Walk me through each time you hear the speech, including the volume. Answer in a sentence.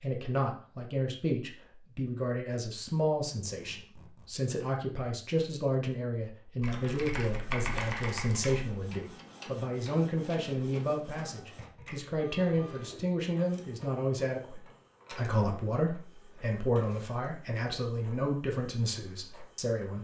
The speech can be heard from 0.0 to 20.0 s, at a steady volume.